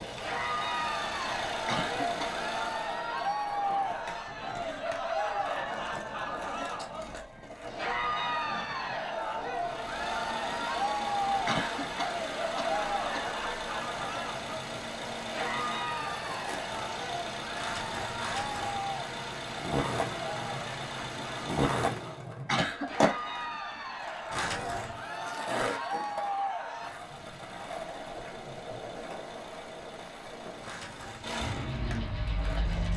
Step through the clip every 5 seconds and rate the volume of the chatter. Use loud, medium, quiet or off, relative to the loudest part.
loud, loud, loud, loud, medium, loud, off.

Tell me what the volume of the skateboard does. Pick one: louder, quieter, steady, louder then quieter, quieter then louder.
louder then quieter.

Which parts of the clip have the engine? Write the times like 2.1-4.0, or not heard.
0.0-3.1, 9.5-22.2, 26.9-32.9.